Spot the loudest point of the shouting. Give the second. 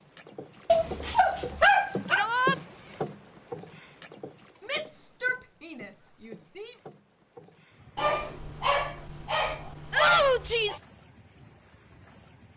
10 s.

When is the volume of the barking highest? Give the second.
2 s.